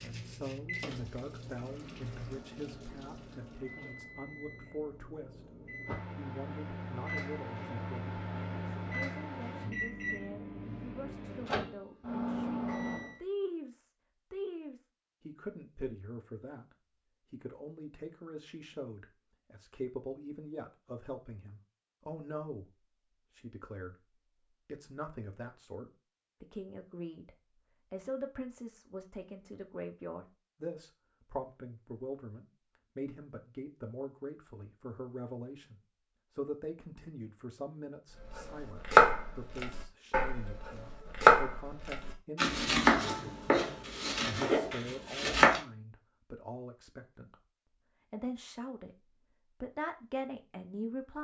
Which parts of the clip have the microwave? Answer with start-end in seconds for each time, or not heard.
0.0-13.2.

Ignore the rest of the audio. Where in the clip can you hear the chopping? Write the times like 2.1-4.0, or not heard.
38.2-45.6.